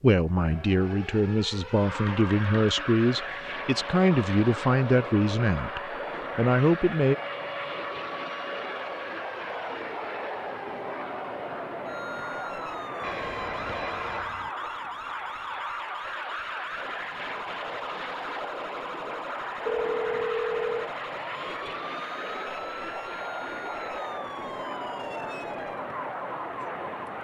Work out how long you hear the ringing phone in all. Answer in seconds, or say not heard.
4 s.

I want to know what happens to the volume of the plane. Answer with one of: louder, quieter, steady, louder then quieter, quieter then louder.
steady.